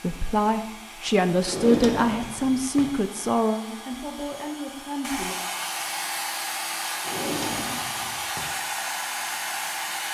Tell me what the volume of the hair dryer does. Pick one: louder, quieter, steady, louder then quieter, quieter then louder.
louder.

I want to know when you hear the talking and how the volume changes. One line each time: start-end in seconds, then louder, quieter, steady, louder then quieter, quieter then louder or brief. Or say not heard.
0.0-5.3 quieter.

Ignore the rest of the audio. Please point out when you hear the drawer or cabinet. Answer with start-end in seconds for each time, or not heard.
1.4-2.9, 7.0-8.5.